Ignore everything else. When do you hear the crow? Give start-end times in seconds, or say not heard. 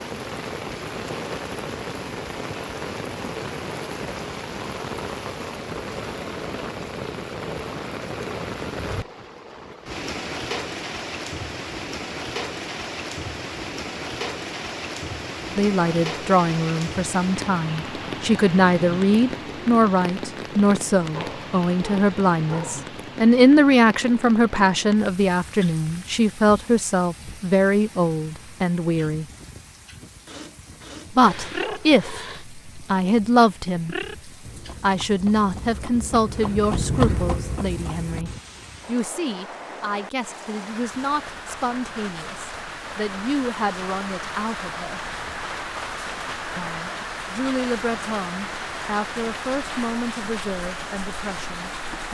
not heard.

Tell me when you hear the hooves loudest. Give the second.
37 s.